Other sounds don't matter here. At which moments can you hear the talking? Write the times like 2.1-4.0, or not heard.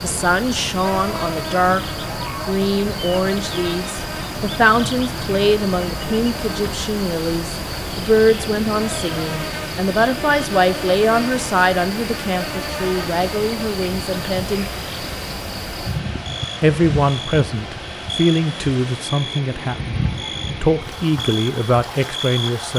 0.0-1.8, 2.5-14.7, 16.6-22.7.